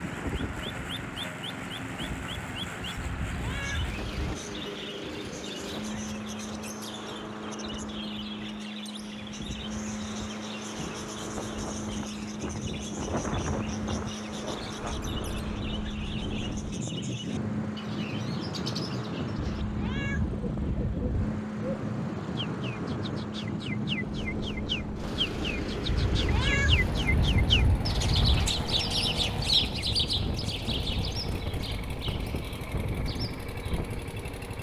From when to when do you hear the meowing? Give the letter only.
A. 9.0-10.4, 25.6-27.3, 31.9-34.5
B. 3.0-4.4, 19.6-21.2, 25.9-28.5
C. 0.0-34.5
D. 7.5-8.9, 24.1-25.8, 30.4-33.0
B.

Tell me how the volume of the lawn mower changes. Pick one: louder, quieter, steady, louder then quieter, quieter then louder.
steady.